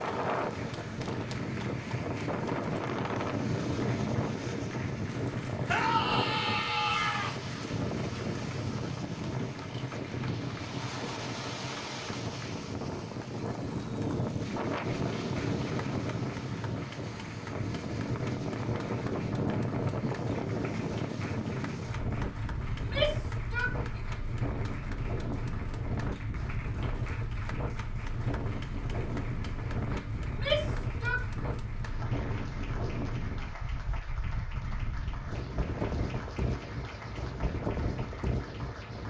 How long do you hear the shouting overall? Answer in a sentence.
You can hear the shouting for 4 seconds altogether.